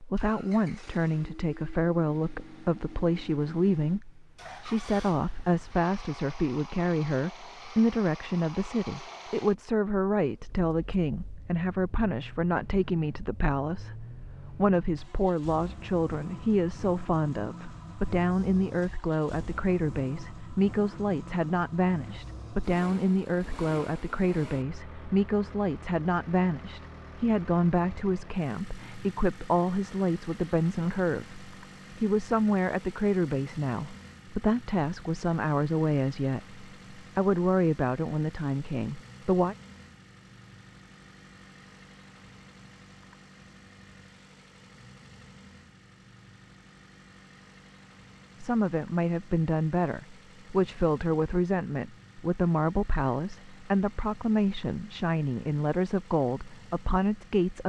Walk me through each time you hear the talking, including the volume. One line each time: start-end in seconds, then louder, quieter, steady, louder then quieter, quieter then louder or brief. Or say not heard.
0.0-39.5 steady
48.4-57.6 steady.